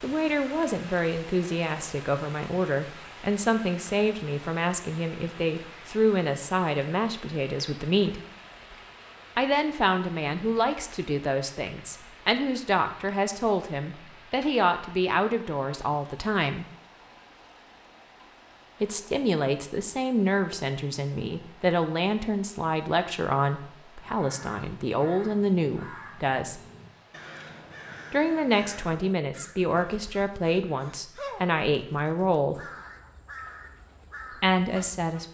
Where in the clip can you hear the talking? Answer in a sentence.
You can hear the talking from 0.0 to 8.2 s, from 9.3 to 16.6 s, from 18.8 to 26.6 s, from 28.1 to 32.6 s and from 34.4 to 35.3 s.